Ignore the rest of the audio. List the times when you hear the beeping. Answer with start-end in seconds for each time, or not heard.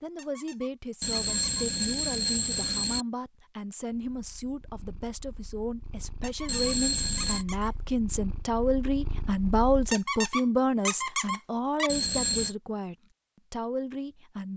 1.0-3.0, 6.5-7.5, 11.8-12.6.